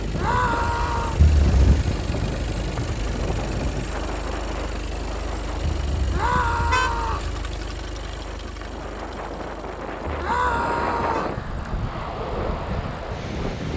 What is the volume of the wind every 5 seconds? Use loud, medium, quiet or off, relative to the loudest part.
loud, medium, loud.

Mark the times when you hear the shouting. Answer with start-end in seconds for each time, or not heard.
0.1-1.2, 6.1-7.3, 10.2-11.3.